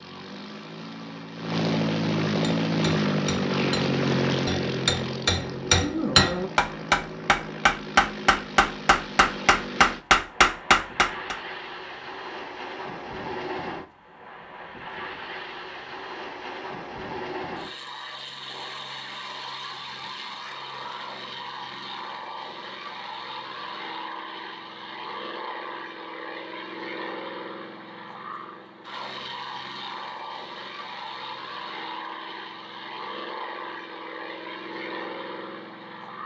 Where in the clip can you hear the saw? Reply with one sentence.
You can't hear the saw here.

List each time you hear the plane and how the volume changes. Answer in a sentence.
The plane can be heard from 0.0 to 36.2 s, getting quieter.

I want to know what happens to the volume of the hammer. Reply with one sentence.
The loudness of the hammer goes up.